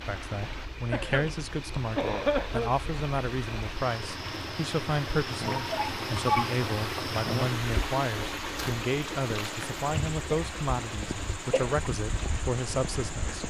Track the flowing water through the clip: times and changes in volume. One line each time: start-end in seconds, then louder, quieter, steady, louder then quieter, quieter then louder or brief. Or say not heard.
0.0-13.4 louder then quieter.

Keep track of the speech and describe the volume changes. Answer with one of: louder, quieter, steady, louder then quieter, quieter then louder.
steady.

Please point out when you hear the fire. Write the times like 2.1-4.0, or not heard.
not heard.